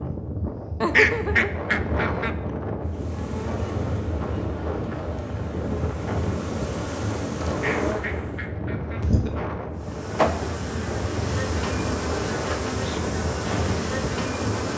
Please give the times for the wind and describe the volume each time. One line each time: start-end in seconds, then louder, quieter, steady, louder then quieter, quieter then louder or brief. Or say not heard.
0.0-14.7 steady.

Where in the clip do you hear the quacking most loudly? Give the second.
1 s.